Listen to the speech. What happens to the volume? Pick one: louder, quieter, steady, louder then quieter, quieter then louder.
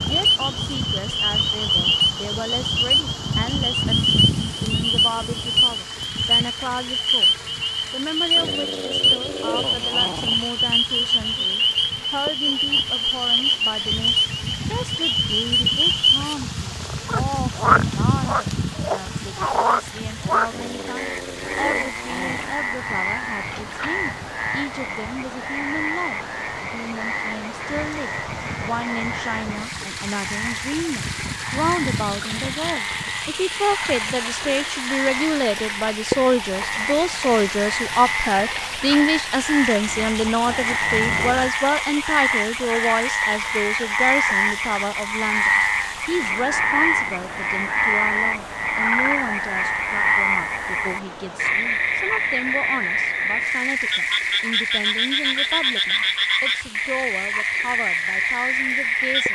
louder then quieter.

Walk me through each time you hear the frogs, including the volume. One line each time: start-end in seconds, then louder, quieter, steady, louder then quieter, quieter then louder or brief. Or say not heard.
0.0-59.3 quieter then louder.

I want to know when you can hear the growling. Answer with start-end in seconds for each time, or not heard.
8.3-10.3, 20.5-22.6, 39.9-41.5.